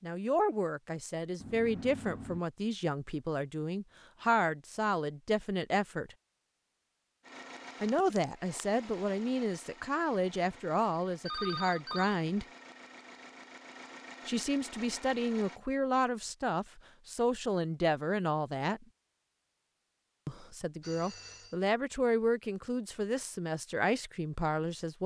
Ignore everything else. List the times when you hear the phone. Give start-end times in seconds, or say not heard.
1.4-2.5, 11.2-12.2, 20.8-21.6.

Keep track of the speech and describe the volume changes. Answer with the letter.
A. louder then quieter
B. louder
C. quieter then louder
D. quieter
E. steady
E.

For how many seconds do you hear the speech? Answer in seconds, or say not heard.
20 s.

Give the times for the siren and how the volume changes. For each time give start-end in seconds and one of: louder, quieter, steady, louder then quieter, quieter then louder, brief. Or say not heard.
not heard.